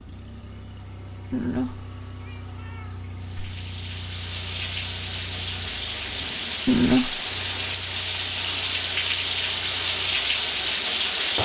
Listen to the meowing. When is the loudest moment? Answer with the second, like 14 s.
7 s.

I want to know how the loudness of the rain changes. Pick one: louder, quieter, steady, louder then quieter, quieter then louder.
louder.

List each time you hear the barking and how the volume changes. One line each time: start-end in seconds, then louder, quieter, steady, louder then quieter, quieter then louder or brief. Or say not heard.
not heard.